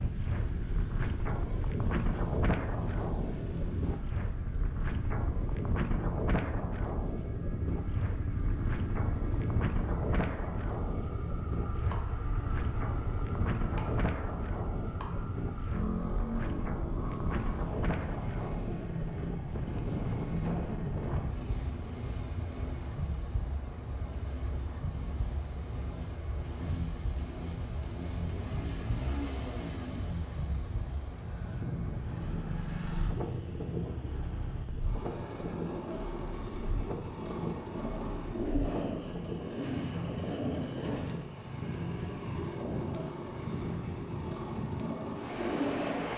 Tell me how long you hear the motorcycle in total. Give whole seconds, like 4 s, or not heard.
46 s.